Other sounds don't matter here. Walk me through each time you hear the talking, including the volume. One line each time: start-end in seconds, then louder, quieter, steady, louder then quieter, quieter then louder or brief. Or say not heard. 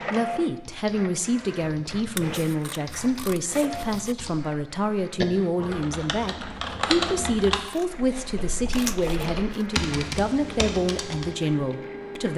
0.1-12.3 steady.